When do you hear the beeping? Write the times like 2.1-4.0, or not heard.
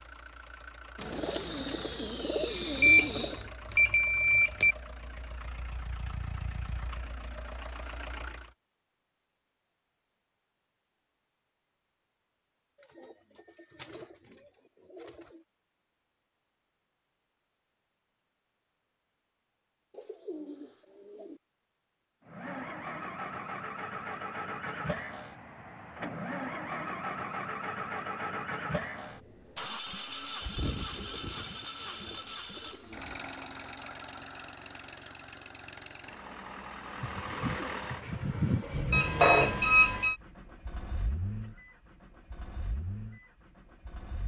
2.7-4.8, 38.9-40.1.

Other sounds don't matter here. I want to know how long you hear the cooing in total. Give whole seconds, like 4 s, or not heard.
11 s.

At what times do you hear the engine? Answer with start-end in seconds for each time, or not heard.
0.0-8.6, 22.2-44.2.